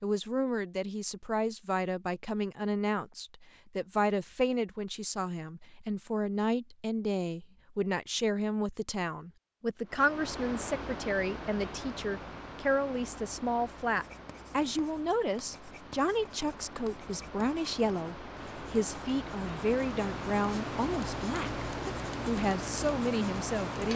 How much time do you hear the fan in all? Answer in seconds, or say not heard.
14 s.